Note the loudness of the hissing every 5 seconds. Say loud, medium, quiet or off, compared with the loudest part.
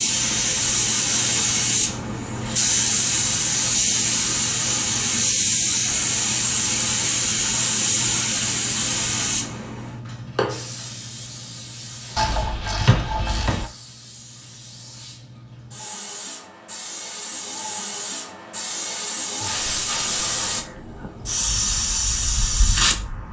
loud, loud, quiet, medium, loud.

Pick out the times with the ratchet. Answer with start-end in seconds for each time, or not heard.
12.2-13.7.